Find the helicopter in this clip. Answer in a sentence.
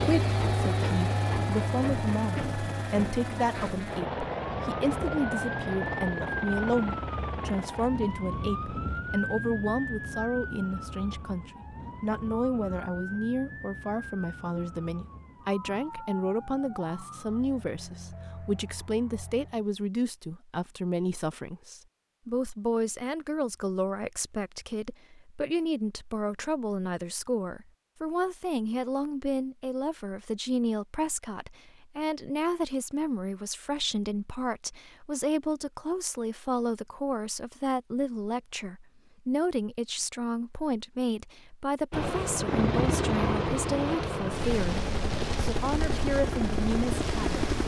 The helicopter can be heard from 0.0 to 7.9 s and from 41.9 to 47.6 s.